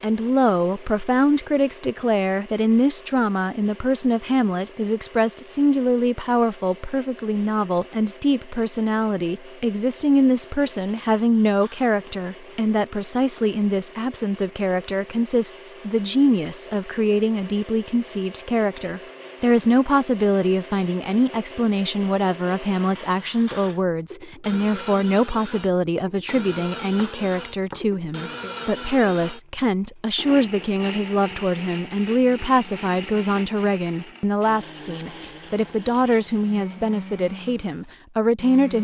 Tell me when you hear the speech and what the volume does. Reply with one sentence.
The speech can be heard from 0.0 to 38.7 s, at a steady volume.